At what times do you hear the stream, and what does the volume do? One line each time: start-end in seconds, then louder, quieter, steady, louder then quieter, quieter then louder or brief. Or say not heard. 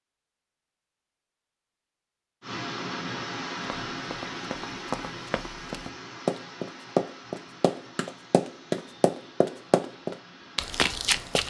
2.4-11.4 quieter.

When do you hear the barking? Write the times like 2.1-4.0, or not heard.
not heard.